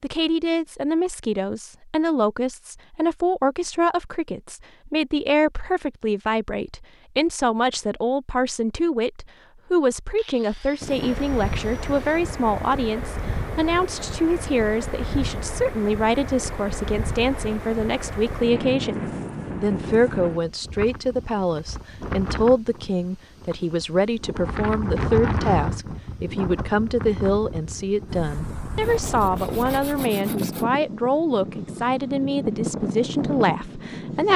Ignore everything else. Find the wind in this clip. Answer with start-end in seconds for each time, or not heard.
10.8-34.3.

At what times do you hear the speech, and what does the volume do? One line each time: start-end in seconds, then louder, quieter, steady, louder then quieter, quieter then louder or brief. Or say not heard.
0.0-34.3 steady.